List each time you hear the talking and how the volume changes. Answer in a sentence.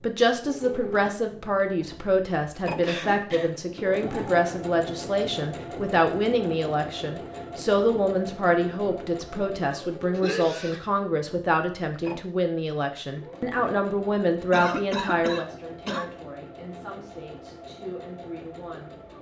You can hear the talking from 0.0 to 18.9 s, getting quieter.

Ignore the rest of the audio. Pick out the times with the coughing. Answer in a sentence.
The coughing can be heard from 2.8 to 3.5 s, from 10.1 to 10.8 s and from 14.5 to 16.1 s.